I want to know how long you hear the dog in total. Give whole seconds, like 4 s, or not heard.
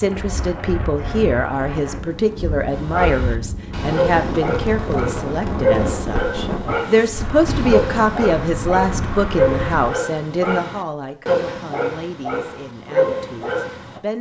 11 s.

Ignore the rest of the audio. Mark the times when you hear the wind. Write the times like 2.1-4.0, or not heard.
0.0-9.9.